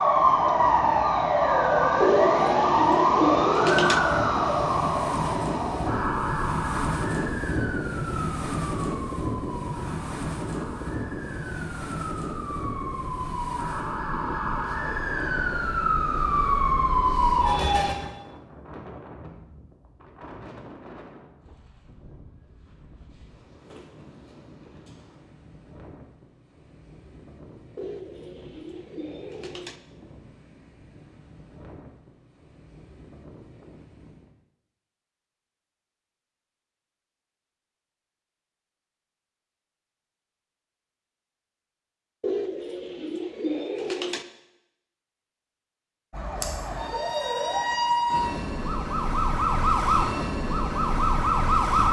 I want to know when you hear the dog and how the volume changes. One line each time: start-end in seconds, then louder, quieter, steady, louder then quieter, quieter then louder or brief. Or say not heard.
not heard.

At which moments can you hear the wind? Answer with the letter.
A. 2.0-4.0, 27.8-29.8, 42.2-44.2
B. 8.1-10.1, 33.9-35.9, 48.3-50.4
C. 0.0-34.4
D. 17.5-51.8
C.